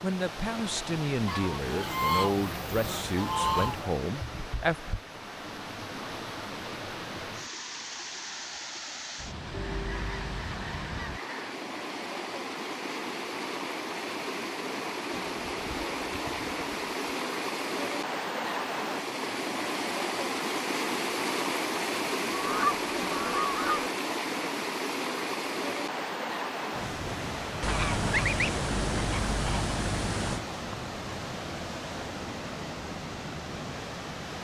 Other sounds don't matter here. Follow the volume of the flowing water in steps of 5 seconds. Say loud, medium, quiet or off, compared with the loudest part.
medium, medium, medium, loud, loud, loud, medium.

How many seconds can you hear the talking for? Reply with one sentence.
The talking can be heard for 5 seconds in total.